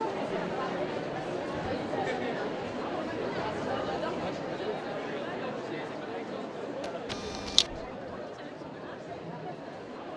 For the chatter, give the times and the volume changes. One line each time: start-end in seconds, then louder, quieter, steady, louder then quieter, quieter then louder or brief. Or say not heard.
0.0-10.1 quieter.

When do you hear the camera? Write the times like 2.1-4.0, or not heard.
6.8-7.7.